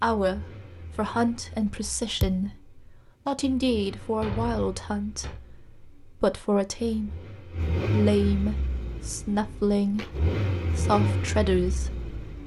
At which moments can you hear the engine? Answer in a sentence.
The engine can be heard from 0.0 to 12.4 s.